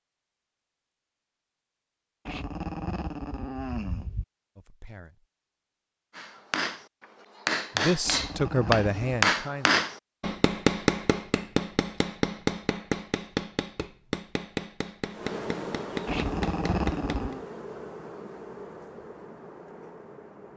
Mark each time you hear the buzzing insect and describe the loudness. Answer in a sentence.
The buzzing insect can be heard from 15.1 to 20.5 s, getting quieter.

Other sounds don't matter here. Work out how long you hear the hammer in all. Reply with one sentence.
The hammer can be heard for 11 seconds in total.